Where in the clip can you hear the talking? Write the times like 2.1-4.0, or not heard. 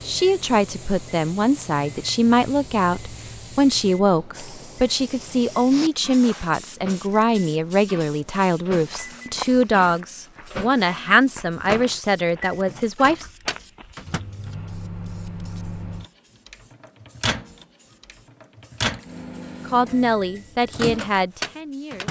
0.0-13.2, 19.6-22.0.